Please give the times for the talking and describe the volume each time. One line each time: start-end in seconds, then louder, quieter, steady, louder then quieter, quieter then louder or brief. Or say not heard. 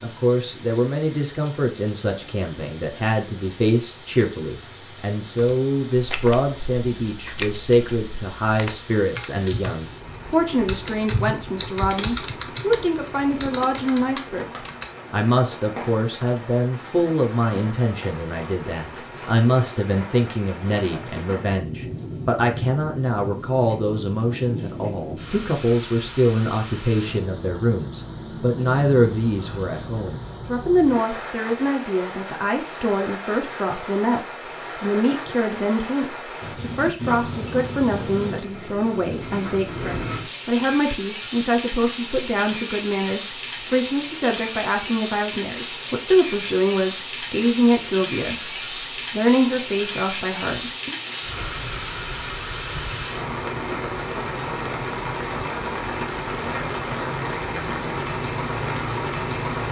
0.0-14.5 steady
15.1-51.0 steady.